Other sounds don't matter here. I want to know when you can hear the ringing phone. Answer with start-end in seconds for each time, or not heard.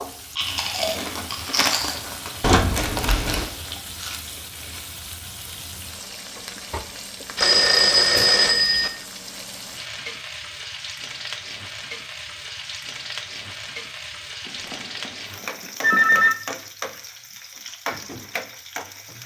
2.4-3.5, 7.3-8.9, 14.4-16.4.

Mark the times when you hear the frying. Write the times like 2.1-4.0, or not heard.
0.0-19.2.